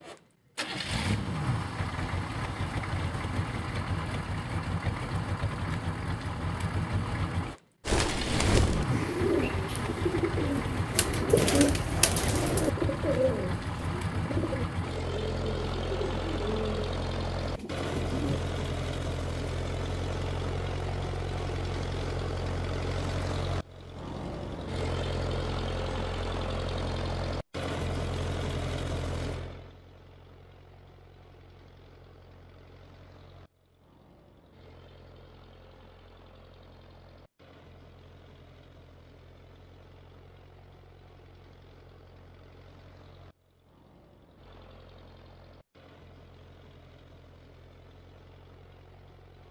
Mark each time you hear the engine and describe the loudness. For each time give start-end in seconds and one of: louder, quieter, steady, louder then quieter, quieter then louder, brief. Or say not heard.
0.0-49.4 quieter.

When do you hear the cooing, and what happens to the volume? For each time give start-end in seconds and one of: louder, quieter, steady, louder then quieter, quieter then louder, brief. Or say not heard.
7.8-18.4 quieter.